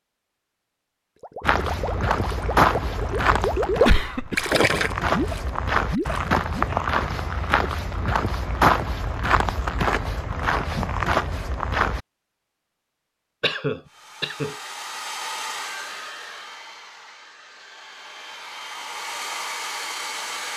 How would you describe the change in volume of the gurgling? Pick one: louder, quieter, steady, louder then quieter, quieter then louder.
louder then quieter.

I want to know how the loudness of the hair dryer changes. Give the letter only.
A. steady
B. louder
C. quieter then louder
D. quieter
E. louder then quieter
C.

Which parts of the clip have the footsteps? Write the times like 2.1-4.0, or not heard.
1.4-12.0.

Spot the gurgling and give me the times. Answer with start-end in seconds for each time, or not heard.
1.2-6.8.